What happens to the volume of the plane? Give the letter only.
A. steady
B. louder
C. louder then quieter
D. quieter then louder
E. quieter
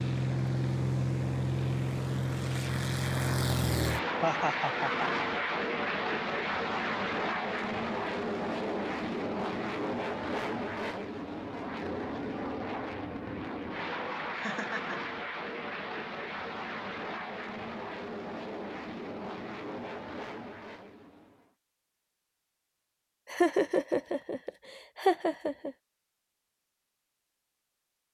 E.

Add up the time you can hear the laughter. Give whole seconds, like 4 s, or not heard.
4 s.